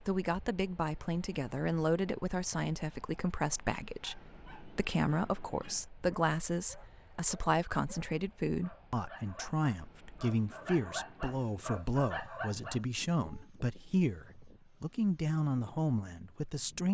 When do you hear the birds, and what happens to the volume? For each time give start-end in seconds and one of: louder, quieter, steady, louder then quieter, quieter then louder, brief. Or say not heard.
not heard.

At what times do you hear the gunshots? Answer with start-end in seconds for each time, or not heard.
not heard.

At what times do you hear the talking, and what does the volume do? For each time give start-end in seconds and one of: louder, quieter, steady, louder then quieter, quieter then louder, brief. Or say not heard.
0.1-16.8 steady.